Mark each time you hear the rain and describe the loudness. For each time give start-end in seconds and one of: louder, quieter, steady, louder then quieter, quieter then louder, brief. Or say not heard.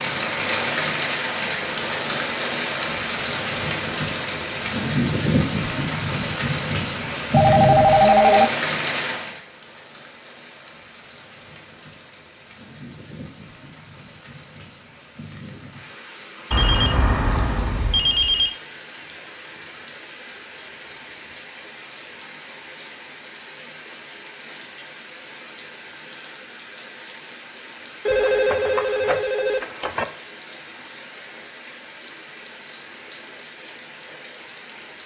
0.0-35.0 quieter.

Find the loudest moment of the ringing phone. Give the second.
8 s.